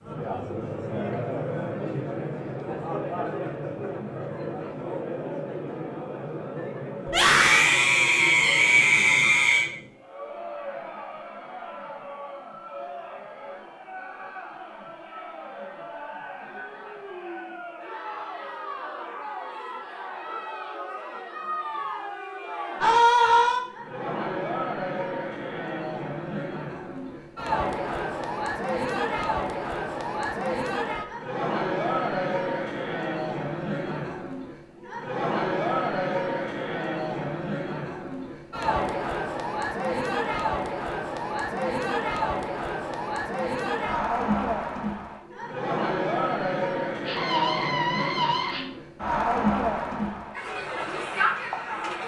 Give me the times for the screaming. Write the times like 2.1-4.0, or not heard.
7.0-9.7, 22.8-23.6, 47.0-48.6.